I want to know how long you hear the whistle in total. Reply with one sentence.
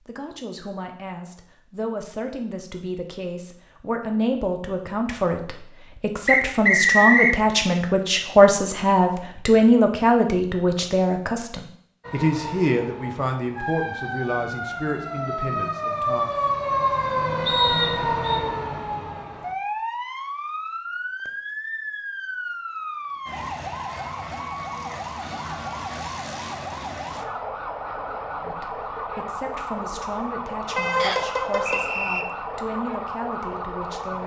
You can hear the whistle for 3 seconds altogether.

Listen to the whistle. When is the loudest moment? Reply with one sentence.
The loudest moment of the whistle is at 7 seconds.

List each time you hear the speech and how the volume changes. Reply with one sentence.
You can hear the speech from 0.0 to 16.3 s, getting louder then quieter; and from 28.4 to 34.2 s, at a steady volume.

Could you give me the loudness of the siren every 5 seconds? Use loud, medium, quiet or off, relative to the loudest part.
off, off, medium, loud, medium, medium, medium.